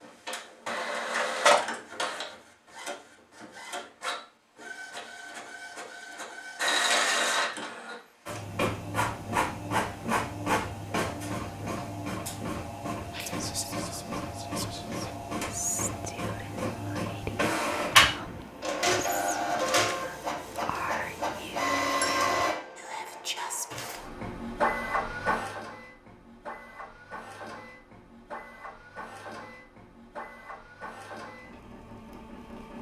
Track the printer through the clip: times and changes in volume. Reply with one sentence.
The printer can be heard from 0.0 to 32.7 s, getting quieter.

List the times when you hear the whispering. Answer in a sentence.
You can hear the whispering from 13.1 to 23.9 s.